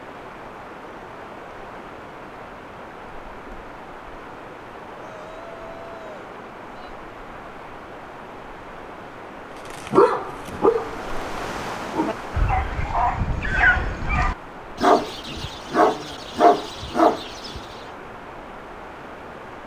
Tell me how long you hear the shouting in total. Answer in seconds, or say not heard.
2 s.